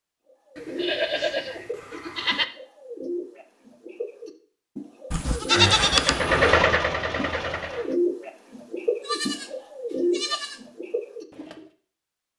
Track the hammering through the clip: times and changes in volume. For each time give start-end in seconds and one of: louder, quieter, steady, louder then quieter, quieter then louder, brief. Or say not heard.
not heard.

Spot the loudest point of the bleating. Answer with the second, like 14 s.
6 s.